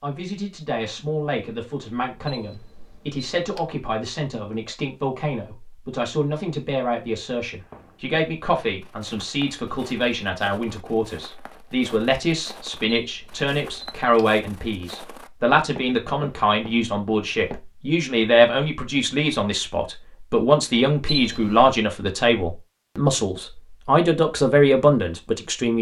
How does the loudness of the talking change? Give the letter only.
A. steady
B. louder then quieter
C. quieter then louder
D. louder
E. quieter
D.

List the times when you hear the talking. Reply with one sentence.
You can hear the talking from 0.0 to 25.7 s.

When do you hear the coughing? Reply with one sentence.
The coughing can't be heard in this clip.